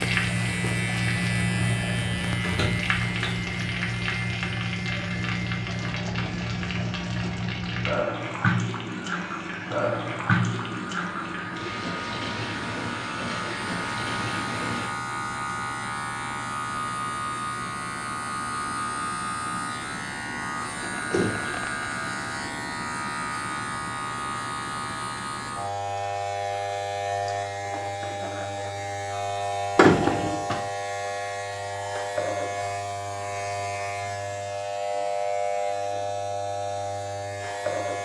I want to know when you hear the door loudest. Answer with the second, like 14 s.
30 s.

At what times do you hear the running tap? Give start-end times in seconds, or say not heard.
0.0-14.9.